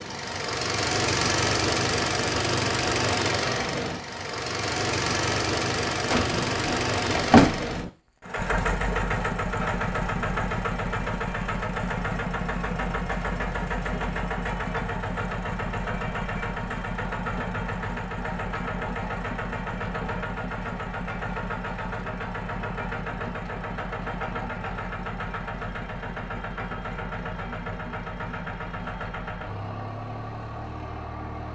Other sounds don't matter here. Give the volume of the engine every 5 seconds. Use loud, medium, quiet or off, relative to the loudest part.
loud, loud, loud, medium, medium, medium, medium.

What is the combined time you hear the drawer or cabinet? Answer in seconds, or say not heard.
2 s.